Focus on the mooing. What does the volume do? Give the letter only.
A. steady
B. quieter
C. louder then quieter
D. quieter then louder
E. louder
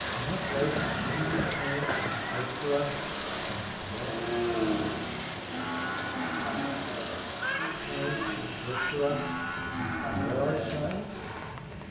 D.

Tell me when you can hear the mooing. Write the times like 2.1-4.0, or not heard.
4.0-11.0.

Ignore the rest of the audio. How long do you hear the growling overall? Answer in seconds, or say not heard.
2 s.